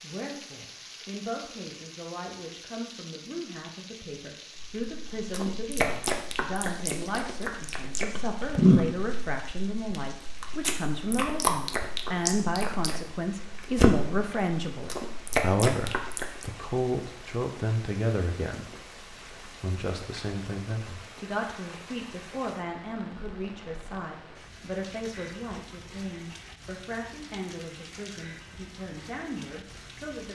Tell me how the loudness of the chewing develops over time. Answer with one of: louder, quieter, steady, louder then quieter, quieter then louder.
louder then quieter.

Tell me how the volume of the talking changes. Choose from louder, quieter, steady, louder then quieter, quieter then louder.
louder then quieter.